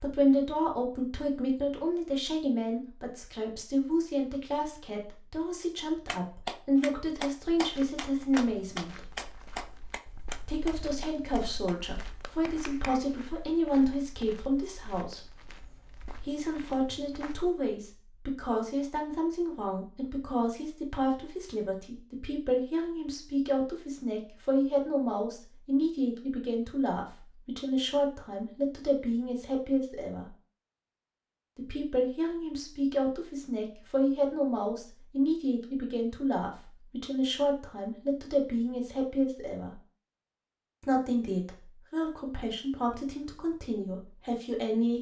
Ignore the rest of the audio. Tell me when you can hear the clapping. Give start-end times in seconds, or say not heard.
6.0-13.0.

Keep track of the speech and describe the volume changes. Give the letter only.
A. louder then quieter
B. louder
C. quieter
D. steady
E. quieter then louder
D.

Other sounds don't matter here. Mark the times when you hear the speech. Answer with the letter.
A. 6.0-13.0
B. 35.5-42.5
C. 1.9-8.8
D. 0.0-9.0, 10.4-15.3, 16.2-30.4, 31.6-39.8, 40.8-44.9
D.